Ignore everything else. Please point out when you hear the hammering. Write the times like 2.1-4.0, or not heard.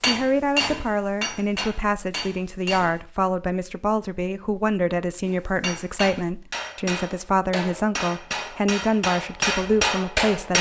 0.0-3.0, 5.2-10.5.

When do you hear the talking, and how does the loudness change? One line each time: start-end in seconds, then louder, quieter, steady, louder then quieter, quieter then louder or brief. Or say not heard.
0.1-10.5 steady.